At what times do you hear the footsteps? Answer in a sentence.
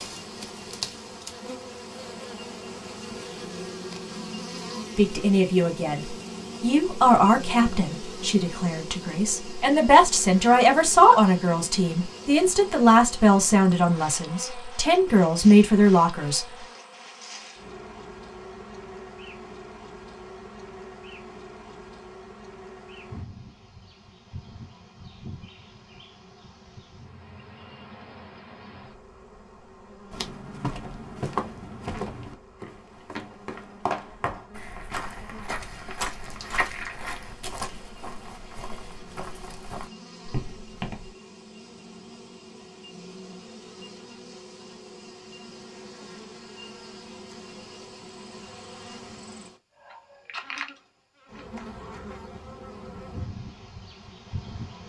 You can hear the footsteps from 30.1 to 41.1 s.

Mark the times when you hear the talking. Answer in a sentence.
You can hear the talking from 5.0 to 16.4 s.